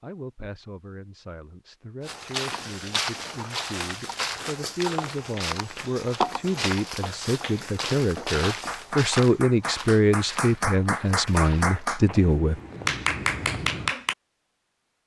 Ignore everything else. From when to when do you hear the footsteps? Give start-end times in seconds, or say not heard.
2.0-13.9.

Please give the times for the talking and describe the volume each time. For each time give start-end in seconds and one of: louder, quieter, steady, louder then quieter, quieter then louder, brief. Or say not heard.
0.0-12.6 louder.